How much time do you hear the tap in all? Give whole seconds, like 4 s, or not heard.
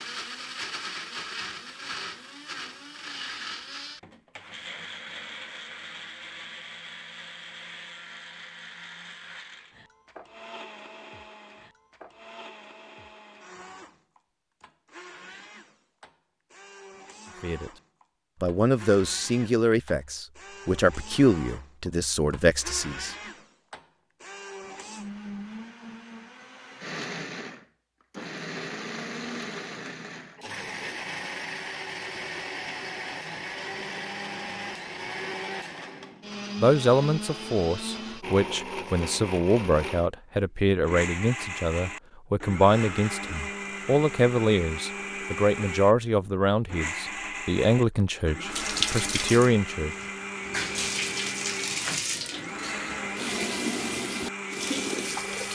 7 s.